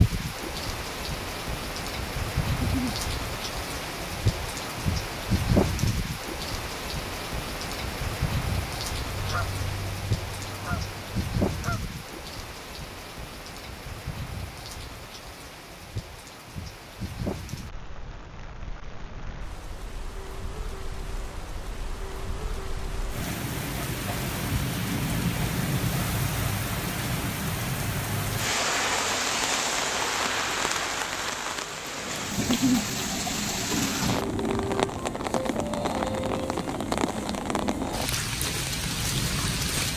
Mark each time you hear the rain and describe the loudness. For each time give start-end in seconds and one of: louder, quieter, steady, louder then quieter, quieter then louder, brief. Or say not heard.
0.0-39.9 quieter then louder.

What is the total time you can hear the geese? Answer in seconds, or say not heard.
3 s.